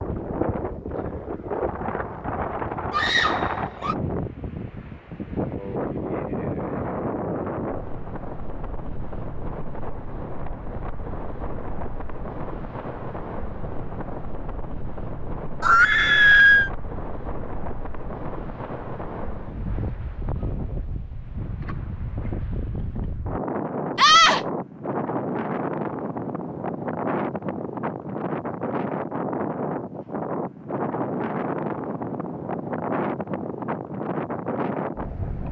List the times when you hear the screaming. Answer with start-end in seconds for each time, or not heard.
2.9-4.0, 15.6-16.7, 23.9-24.4.